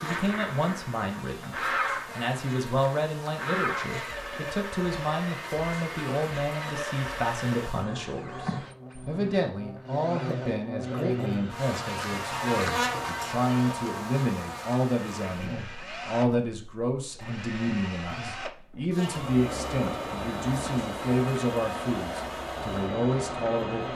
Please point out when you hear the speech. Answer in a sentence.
You can hear the speech from 0.0 to 23.9 s.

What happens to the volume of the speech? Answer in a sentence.
The loudness of the speech stays about the same.